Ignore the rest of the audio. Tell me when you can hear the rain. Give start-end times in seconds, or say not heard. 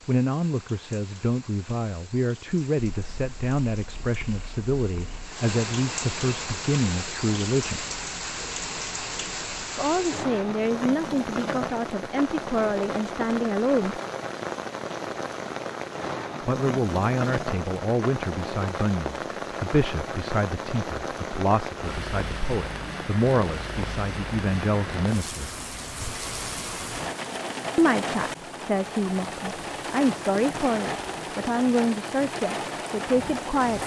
0.0-33.8.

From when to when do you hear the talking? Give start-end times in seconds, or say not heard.
0.1-7.8, 9.8-14.0, 16.4-25.6, 27.8-33.8.